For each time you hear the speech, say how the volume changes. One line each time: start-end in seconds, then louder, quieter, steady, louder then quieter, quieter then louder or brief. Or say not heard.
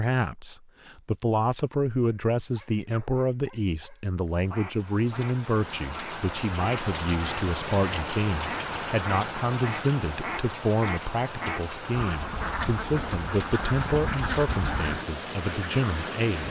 0.0-16.4 steady.